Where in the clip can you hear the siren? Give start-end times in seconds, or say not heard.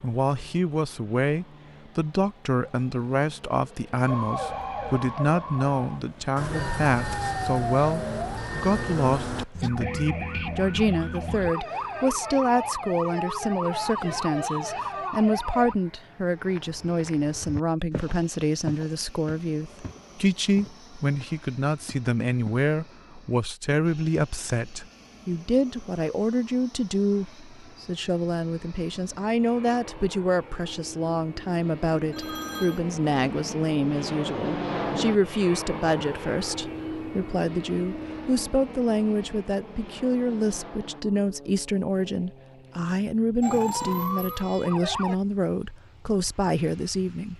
4.0-15.8, 43.4-45.1.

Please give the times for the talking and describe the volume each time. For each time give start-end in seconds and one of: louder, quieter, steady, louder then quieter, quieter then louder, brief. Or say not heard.
0.0-47.3 steady.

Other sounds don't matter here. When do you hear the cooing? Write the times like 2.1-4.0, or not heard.
not heard.